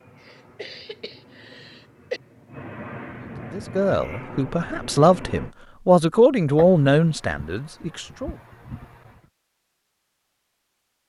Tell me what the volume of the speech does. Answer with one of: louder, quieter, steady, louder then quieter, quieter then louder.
louder then quieter.